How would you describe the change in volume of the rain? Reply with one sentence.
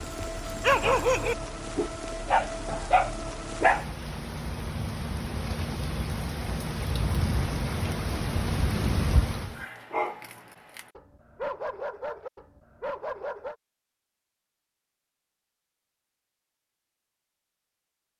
The loudness of the rain goes up.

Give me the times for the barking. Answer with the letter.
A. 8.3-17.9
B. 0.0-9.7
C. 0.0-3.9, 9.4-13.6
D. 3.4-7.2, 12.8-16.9
C.